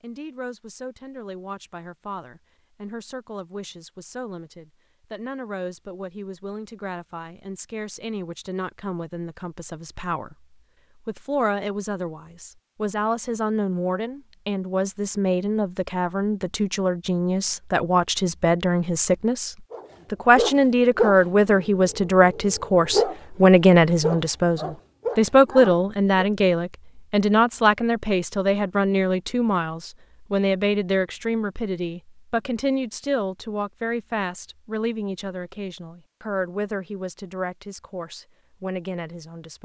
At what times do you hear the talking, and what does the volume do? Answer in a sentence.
You can hear the talking from 0.0 to 39.6 s, getting louder then quieter.